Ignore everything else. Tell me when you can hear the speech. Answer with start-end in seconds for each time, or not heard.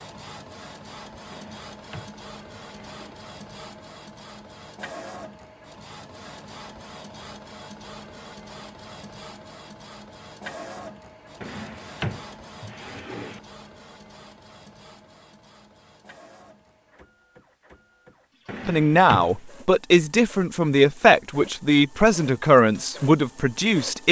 18.6-24.0.